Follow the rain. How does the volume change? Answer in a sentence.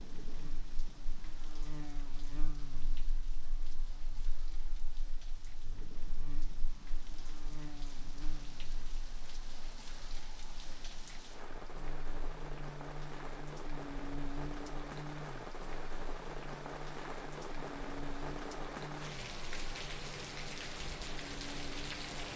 The volume of the rain goes up.